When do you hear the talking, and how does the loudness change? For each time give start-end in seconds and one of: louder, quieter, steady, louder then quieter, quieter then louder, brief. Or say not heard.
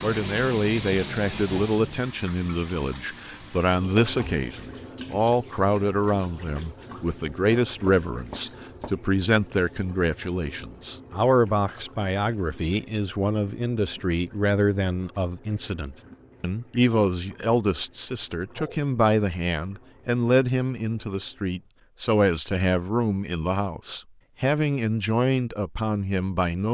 0.0-26.6 steady.